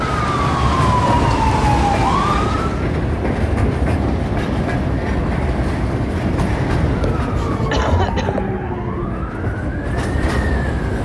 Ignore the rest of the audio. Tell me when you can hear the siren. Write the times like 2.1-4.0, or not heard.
0.0-2.9, 6.8-11.0.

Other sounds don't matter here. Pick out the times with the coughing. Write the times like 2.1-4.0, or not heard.
7.7-8.4.